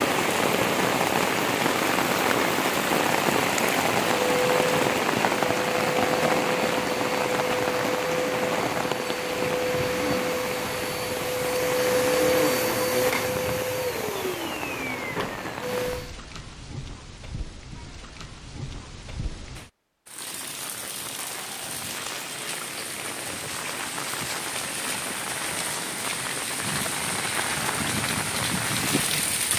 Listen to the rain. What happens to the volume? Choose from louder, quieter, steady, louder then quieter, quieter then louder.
quieter then louder.